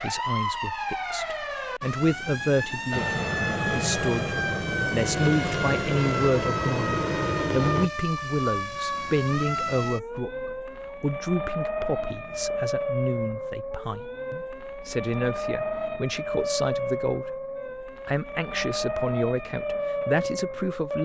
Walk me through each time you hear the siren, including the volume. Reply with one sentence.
You can hear the siren from 0.0 to 20.9 s, at a steady volume.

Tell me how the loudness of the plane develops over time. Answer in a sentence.
The loudness of the plane stays about the same.